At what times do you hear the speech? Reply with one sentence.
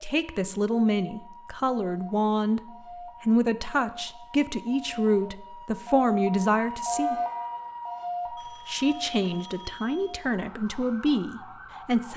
The speech can be heard from 0.0 to 7.2 s and from 8.5 to 12.1 s.